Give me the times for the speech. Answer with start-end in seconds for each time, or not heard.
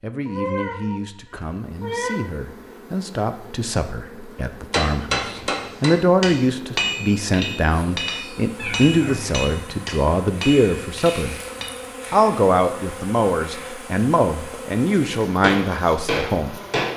0.0-11.3, 12.1-16.6.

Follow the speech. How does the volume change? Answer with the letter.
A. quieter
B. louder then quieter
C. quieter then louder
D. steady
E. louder
E.